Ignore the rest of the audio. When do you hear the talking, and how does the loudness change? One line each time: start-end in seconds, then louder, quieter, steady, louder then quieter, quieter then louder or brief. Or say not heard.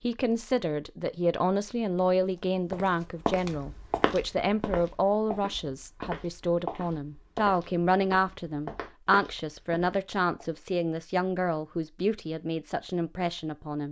0.0-13.8 steady.